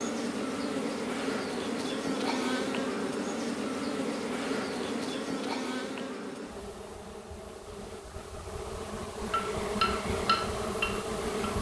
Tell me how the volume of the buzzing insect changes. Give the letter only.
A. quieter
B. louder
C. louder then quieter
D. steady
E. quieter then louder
E.